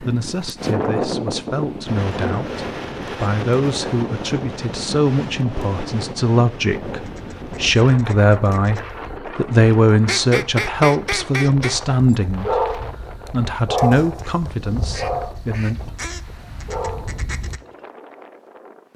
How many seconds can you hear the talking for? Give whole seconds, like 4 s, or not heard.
16 s.